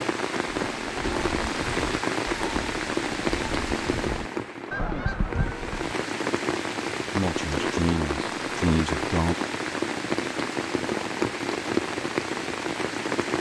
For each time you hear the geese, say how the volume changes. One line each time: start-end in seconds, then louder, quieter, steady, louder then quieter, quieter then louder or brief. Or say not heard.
0.7-6.0 louder.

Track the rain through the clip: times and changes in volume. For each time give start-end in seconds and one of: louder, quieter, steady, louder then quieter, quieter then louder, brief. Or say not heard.
0.0-13.3 steady.